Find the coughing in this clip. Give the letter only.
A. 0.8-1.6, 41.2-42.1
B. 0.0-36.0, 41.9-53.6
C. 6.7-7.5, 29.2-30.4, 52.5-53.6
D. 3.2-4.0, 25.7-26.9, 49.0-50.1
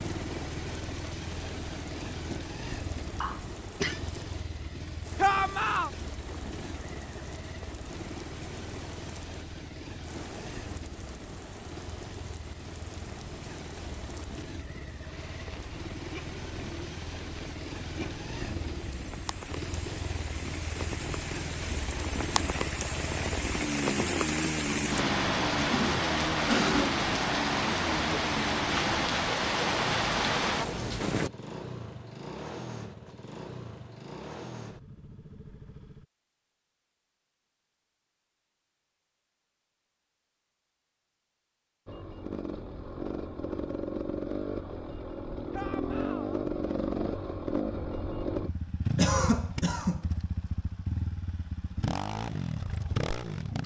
D.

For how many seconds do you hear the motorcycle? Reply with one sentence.
The motorcycle can be heard for 48 seconds in total.